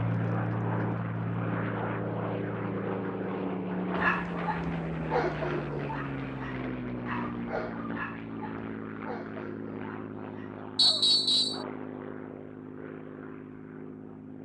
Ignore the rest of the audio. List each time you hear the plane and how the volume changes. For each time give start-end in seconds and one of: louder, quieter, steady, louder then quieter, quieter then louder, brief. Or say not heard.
0.0-14.4 quieter.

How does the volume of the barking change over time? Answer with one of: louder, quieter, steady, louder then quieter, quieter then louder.
quieter.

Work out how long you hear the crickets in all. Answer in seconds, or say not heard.
not heard.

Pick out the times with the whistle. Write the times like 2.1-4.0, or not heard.
10.8-11.6.